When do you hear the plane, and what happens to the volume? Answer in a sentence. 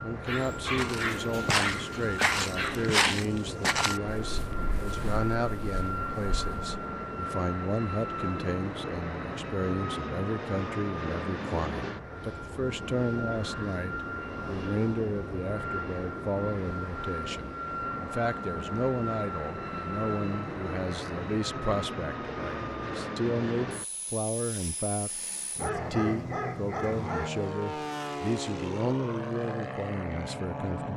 The plane can be heard from 0.0 to 30.9 s, at a steady volume.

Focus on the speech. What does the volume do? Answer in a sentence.
The loudness of the speech stays about the same.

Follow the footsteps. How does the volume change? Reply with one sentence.
The volume of the footsteps goes down.